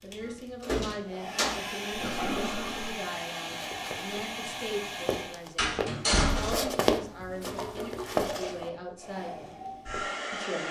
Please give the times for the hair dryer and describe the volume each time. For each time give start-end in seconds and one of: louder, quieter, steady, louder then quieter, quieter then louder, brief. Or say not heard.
0.0-5.4 louder
8.9-10.6 brief.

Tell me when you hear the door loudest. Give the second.
6 s.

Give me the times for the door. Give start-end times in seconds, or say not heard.
0.2-1.6, 5.5-6.7.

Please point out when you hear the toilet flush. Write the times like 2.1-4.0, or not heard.
1.9-3.0, 6.8-8.7.